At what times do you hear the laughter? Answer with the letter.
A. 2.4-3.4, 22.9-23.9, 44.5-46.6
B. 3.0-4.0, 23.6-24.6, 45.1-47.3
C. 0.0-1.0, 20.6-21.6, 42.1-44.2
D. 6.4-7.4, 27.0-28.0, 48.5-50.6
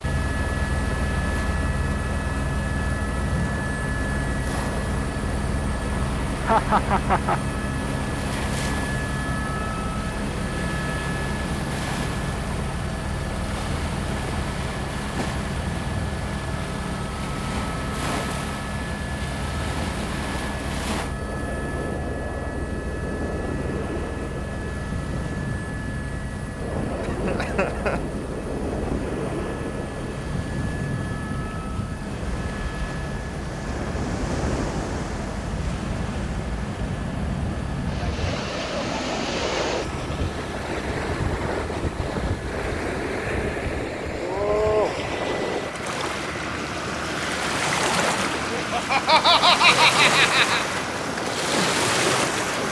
D.